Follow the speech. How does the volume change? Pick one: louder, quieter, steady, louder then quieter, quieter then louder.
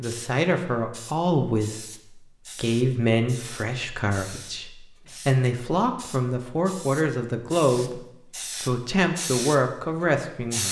steady.